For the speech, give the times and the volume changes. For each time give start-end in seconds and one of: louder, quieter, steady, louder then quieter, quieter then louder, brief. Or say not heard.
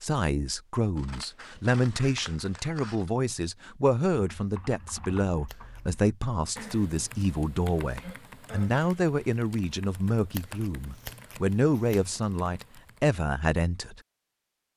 0.0-14.0 steady.